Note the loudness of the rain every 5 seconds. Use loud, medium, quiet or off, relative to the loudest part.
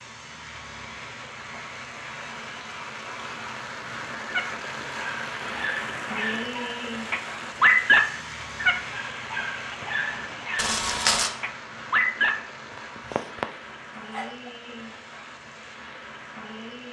loud, loud, medium, medium.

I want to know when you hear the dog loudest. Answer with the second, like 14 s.
8 s.